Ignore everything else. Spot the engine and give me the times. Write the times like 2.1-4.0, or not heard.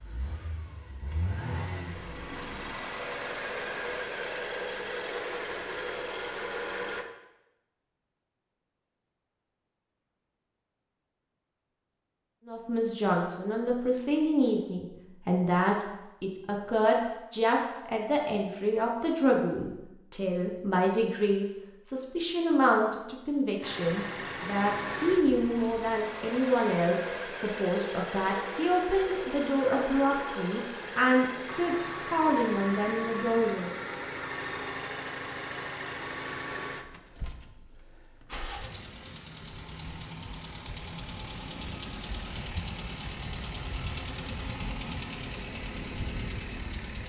0.0-7.0, 23.6-47.0.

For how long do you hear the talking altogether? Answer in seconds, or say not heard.
21 s.